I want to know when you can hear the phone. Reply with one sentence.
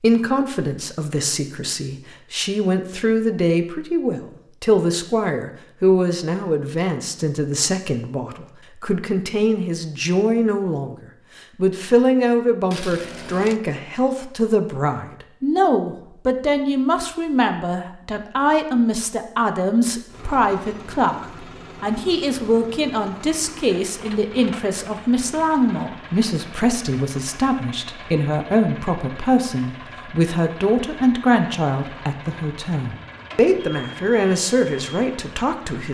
The phone can't be heard in this clip.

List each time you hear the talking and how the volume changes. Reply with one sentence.
The talking can be heard from 0.0 to 35.8 s, at a steady volume.